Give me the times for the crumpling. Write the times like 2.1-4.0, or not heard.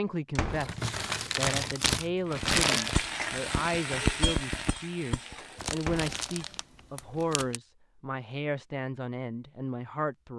0.5-3.0, 5.5-7.6.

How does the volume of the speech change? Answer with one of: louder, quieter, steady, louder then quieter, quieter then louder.
steady.